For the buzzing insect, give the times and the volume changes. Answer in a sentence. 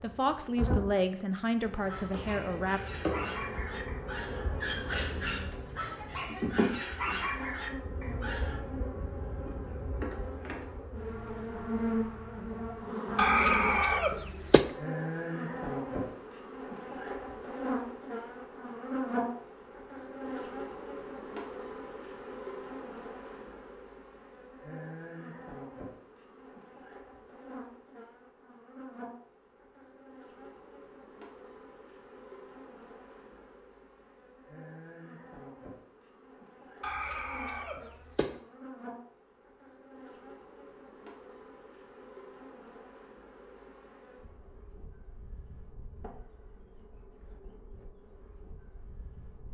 You can hear the buzzing insect from 0.0 to 49.4 s, getting quieter.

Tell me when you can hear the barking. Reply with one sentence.
The barking can be heard from 1.6 to 8.7 s.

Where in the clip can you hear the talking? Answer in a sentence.
The talking can be heard from 0.0 to 2.8 s.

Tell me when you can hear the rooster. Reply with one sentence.
The rooster can be heard from 13.2 to 14.7 s and from 36.8 to 38.3 s.